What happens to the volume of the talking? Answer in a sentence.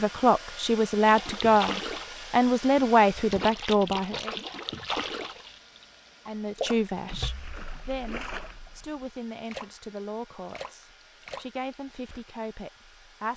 The loudness of the talking goes down.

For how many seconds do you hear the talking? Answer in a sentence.
The talking can be heard for 11 seconds in total.